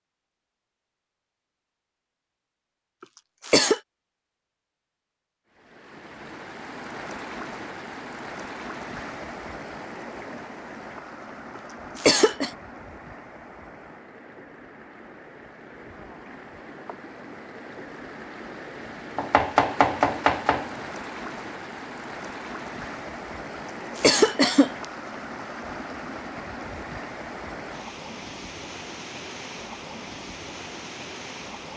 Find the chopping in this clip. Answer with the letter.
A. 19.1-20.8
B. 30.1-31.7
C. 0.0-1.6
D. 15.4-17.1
A.